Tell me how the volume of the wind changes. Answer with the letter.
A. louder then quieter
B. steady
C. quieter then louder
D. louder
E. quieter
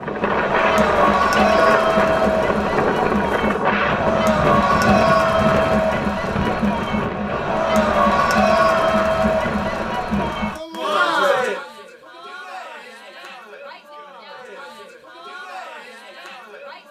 E.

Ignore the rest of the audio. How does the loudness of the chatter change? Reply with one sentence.
The volume of the chatter goes down.